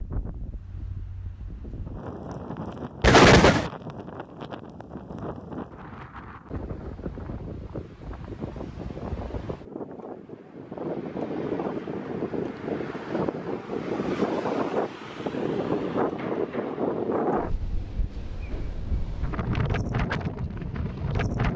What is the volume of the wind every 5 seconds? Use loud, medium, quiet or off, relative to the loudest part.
medium, medium, loud, loud, loud.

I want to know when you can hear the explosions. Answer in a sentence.
The explosions can be heard from 3.0 to 3.7 s.